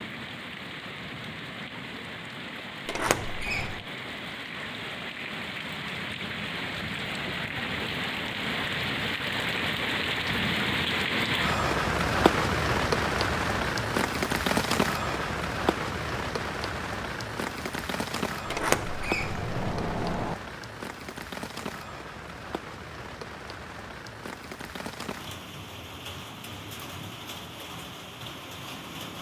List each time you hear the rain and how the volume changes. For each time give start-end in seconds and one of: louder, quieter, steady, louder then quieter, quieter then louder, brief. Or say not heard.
0.0-29.1 louder then quieter.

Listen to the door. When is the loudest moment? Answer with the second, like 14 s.
19 s.